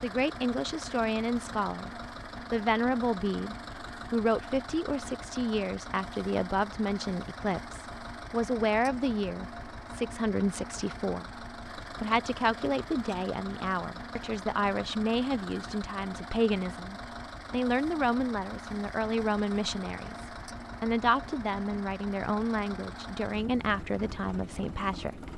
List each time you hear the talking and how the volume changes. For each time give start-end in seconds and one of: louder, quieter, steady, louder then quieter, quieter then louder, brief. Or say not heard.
0.0-25.3 steady.